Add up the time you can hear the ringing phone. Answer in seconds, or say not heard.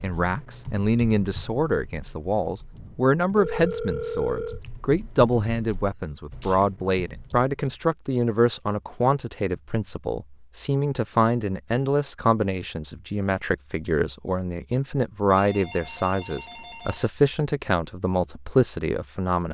4 s.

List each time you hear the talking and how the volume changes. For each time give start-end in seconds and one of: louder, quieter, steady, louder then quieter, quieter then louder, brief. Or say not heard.
0.0-19.5 steady.